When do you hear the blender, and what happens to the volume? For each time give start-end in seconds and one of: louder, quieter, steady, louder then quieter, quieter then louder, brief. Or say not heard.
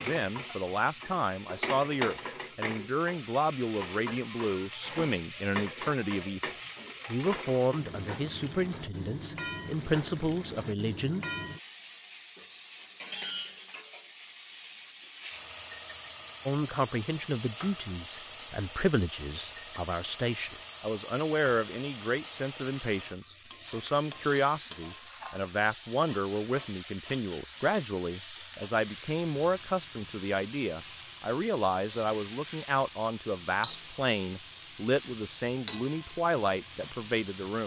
not heard.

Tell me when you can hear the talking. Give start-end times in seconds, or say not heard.
0.1-11.2, 16.4-37.6.